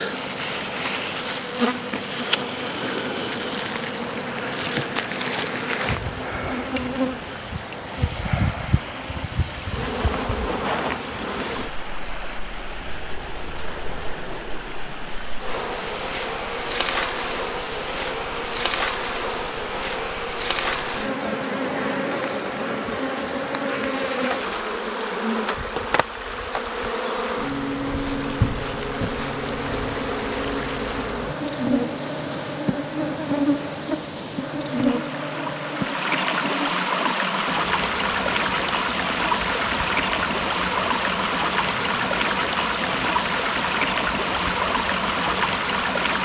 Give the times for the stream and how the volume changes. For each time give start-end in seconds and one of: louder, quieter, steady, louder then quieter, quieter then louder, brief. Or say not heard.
0.0-46.2 louder.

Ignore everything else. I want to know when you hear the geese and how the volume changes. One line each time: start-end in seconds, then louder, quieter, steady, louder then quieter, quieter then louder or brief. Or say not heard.
not heard.